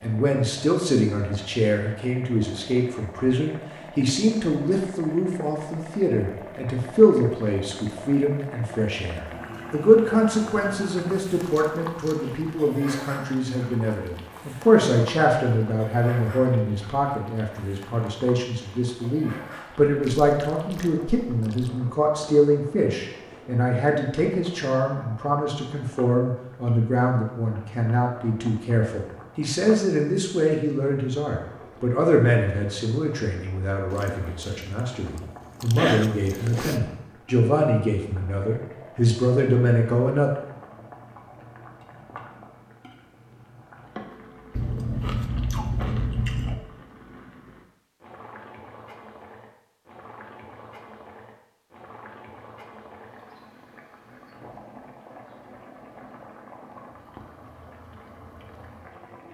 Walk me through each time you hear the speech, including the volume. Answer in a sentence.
You can hear the speech from 0.0 to 40.3 s, at a steady volume.